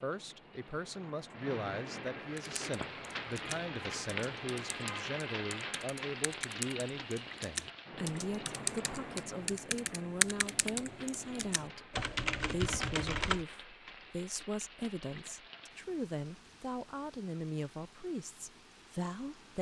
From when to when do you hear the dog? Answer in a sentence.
The dog can't be heard in this clip.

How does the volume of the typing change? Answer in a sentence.
The loudness of the typing goes up.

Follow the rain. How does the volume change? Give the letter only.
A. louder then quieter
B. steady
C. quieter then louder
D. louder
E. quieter
E.